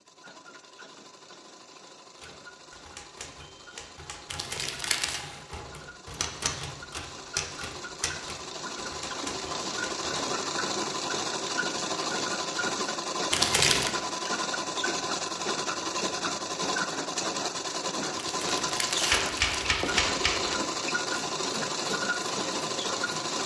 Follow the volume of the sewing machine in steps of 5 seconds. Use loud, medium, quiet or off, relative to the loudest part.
quiet, medium, loud, loud, loud.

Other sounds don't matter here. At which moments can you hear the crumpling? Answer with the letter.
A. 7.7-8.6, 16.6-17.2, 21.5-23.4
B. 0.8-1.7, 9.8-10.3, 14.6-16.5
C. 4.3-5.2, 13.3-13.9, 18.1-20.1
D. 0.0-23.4
C.